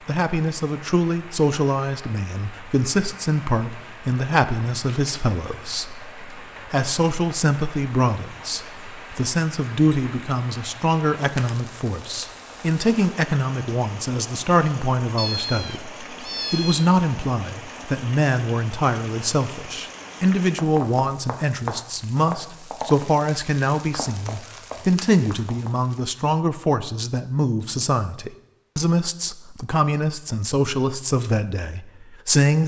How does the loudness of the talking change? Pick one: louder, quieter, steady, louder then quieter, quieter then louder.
steady.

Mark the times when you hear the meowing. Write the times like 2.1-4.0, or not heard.
15.2-16.9.